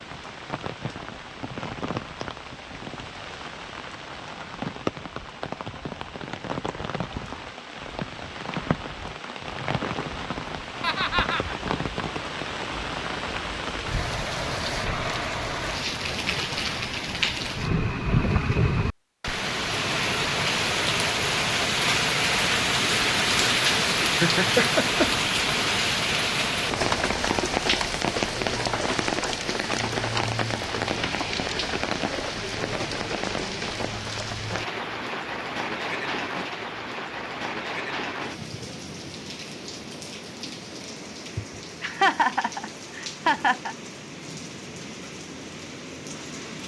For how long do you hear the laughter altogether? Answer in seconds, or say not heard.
4 s.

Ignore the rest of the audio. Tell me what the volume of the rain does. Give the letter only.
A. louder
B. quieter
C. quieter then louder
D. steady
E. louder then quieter
E.